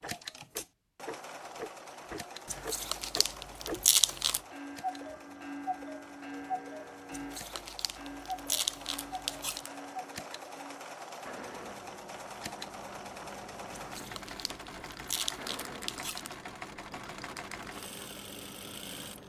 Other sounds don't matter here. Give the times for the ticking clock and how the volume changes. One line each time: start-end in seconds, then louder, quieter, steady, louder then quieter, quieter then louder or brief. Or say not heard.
0.0-19.2 quieter.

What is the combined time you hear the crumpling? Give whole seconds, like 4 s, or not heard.
7 s.